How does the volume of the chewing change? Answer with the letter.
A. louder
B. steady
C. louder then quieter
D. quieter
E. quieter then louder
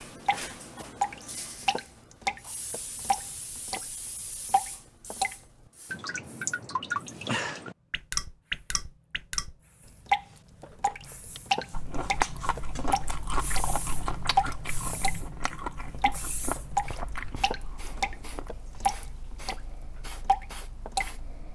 D.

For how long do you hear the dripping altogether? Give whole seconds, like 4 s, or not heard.
20 s.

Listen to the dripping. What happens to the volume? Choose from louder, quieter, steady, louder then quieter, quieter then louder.
steady.